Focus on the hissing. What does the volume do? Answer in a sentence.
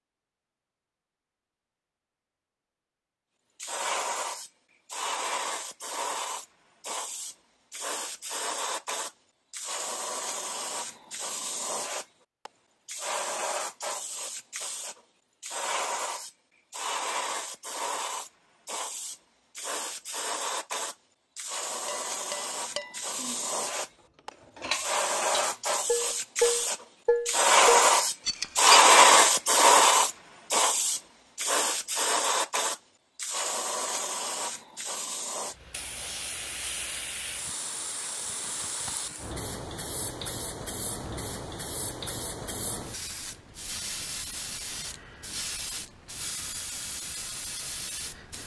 The volume of the hissing goes up, then down.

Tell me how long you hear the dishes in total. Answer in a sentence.
You can hear the dishes for 7 seconds altogether.